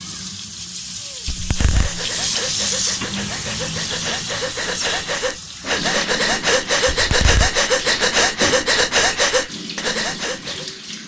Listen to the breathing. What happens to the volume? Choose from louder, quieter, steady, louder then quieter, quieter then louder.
louder.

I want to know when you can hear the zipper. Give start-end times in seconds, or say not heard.
1.2-2.0, 6.9-7.6.